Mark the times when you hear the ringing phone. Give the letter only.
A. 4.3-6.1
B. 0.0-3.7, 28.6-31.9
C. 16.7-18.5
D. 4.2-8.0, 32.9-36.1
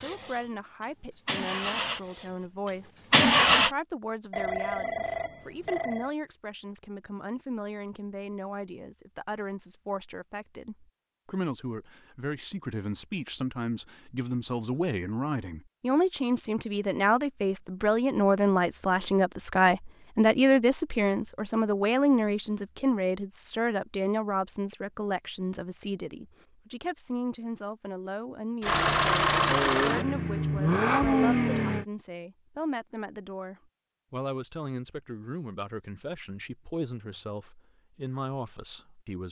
A.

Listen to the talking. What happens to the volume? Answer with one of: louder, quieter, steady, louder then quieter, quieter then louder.
louder then quieter.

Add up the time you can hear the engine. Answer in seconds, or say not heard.
7 s.